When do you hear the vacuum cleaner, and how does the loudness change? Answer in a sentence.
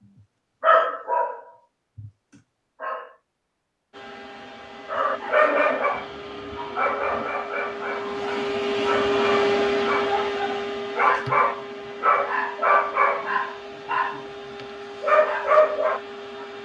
You can hear the vacuum cleaner from 3.9 to 16.5 s, getting louder then quieter.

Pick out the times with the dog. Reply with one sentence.
You can hear the dog from 0.0 to 3.1 s, from 4.8 to 14.2 s and from 15.0 to 16.0 s.